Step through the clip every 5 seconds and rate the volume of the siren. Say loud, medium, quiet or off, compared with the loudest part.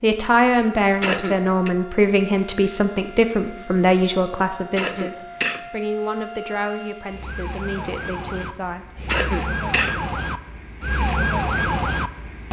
quiet, medium, loud.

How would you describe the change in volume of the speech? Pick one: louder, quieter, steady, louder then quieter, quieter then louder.
quieter.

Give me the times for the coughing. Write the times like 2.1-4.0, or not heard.
1.0-1.7, 4.8-5.7, 9.1-9.9.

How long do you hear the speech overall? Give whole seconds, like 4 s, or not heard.
9 s.